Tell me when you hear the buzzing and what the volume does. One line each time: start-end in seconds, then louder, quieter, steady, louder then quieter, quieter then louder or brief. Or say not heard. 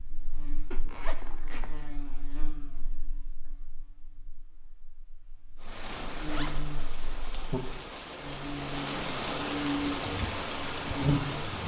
0.0-11.6 quieter then louder.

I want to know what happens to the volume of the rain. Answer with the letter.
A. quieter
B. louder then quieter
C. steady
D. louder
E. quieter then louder
D.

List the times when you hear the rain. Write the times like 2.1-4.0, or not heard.
5.5-11.6.